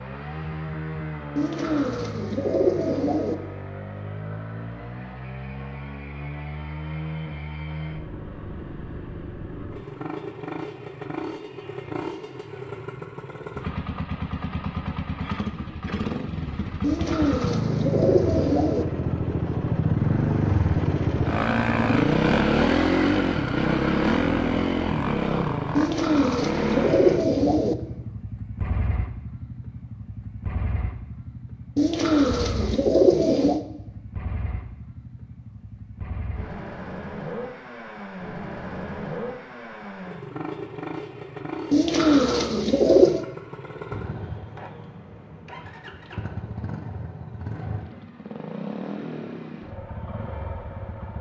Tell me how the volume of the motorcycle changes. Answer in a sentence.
The loudness of the motorcycle goes up, then down.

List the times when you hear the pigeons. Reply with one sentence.
The pigeons can be heard from 1.4 to 3.4 s, from 16.8 to 18.9 s, from 25.8 to 27.8 s, from 31.8 to 33.6 s and from 41.7 to 43.2 s.